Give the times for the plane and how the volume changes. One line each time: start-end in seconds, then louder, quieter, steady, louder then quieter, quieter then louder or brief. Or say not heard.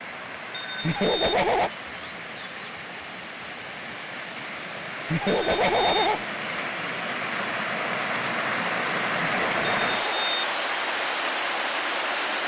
not heard.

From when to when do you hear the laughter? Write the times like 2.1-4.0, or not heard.
0.8-1.7, 5.1-6.2, 9.2-10.3.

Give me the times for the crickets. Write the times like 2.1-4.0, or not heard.
0.0-6.8.